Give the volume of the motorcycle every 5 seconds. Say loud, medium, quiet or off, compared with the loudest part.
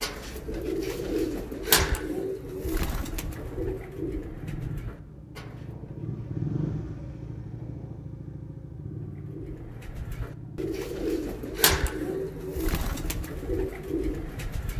medium, loud, medium.